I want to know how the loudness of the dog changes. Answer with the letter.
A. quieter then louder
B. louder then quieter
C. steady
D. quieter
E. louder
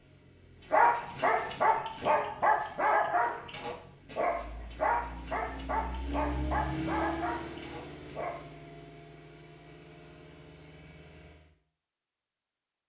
D.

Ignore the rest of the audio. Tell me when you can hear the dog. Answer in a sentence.
The dog can be heard from 0.7 to 8.4 s.